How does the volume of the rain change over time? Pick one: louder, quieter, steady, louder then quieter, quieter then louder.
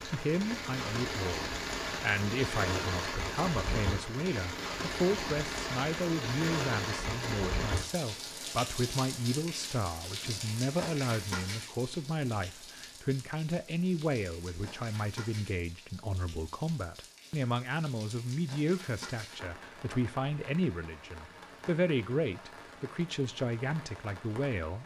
quieter.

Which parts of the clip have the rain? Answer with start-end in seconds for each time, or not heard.
0.0-24.8.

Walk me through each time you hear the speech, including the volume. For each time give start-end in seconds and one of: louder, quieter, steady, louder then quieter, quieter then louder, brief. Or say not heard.
0.1-24.8 steady.